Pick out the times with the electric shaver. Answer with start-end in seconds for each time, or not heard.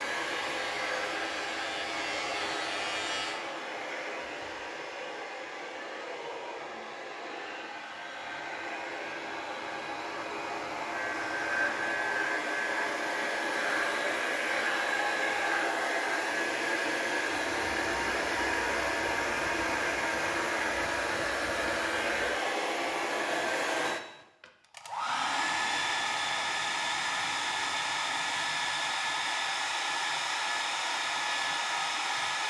0.0-3.4, 10.9-22.4.